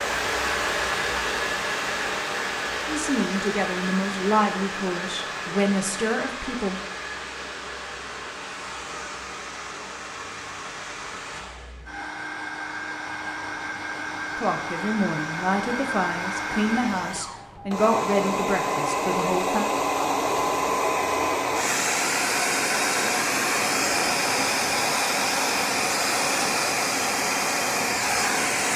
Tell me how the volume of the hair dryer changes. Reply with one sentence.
The volume of the hair dryer goes down, then up.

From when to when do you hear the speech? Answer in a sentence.
You can hear the speech from 2.9 to 6.8 s and from 14.3 to 19.6 s.